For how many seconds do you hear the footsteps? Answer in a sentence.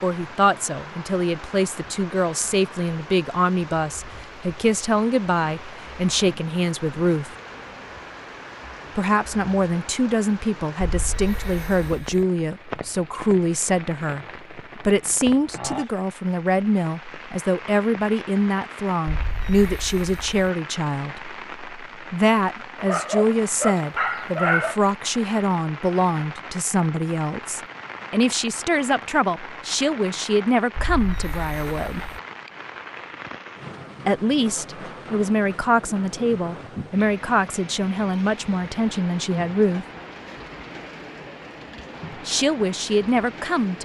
The footsteps can't be heard in this clip.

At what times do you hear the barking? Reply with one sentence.
You can hear the barking from 22.8 to 24.8 s.